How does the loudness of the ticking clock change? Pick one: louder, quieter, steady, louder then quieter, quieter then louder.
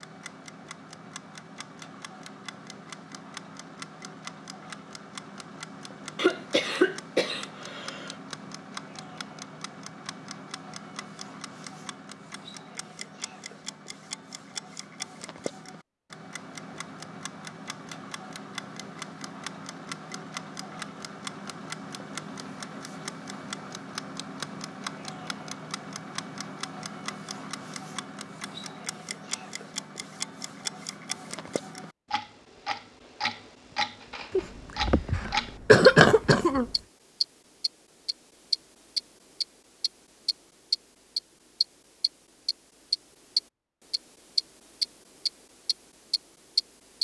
louder.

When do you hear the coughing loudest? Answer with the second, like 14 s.
36 s.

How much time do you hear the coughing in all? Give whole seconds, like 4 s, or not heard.
4 s.